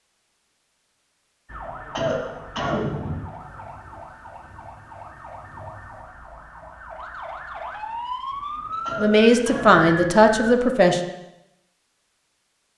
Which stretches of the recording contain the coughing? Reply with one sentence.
You can hear the coughing from 1.8 to 3.2 s and from 8.7 to 9.8 s.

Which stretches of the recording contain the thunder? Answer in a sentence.
You can hear the thunder from 3.4 to 6.2 s.